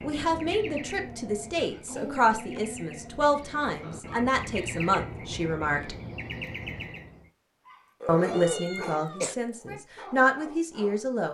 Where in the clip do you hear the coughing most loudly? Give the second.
9 s.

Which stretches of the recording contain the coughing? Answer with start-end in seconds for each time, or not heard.
1.6-2.6, 8.8-9.3.